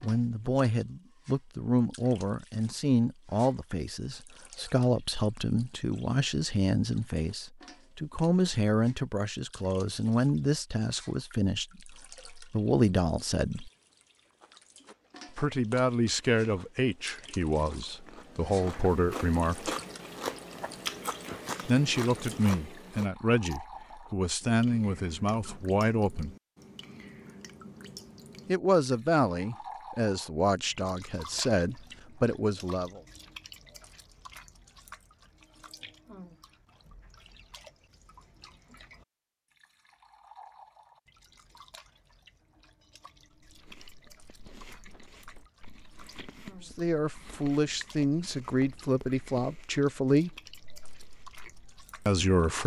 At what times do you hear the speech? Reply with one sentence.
The speech can be heard from 0.0 to 13.7 s, from 15.3 to 19.8 s, from 21.6 to 26.4 s, from 28.4 to 33.0 s, from 46.6 to 50.4 s and from 52.0 to 52.6 s.